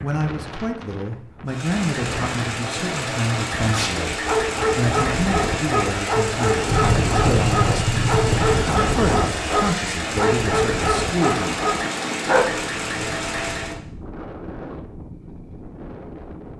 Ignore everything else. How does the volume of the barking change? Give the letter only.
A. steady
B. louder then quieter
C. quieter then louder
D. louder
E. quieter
A.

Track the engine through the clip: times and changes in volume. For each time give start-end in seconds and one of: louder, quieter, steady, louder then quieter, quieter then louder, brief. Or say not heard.
1.4-13.8 steady.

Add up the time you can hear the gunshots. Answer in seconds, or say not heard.
2 s.